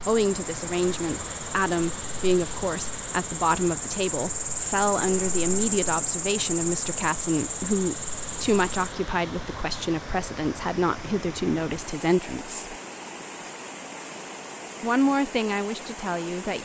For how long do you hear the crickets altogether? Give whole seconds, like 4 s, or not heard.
9 s.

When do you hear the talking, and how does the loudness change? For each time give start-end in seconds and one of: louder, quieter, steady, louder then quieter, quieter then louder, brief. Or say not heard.
0.1-12.8 steady
14.8-16.5 brief.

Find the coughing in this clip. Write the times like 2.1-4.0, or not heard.
not heard.